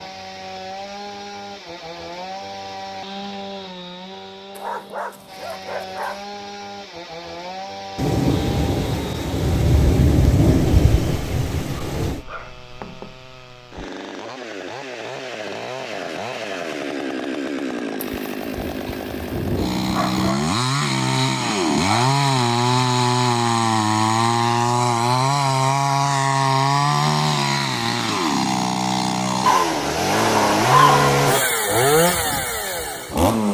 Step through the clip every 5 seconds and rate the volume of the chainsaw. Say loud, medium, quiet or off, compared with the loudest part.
quiet, quiet, quiet, medium, loud, loud, loud.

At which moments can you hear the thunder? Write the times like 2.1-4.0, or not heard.
8.0-12.2, 17.9-20.1.